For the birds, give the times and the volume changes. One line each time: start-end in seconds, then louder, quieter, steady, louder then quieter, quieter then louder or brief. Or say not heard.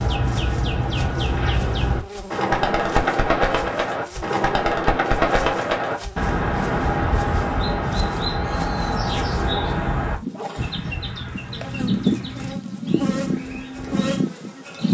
0.0-14.8 quieter.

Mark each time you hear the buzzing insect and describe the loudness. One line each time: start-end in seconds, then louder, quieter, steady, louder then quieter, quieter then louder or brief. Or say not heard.
0.0-14.8 louder.